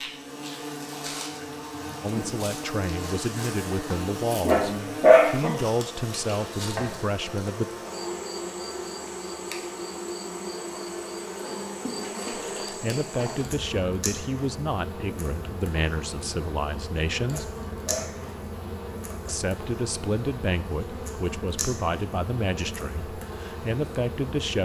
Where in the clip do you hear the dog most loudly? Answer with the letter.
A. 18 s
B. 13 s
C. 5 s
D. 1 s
C.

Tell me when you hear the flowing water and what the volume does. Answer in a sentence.
You can't hear the flowing water here.